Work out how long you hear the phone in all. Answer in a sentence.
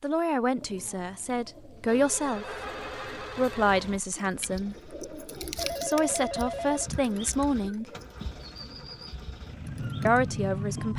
You can hear the phone for 3 seconds altogether.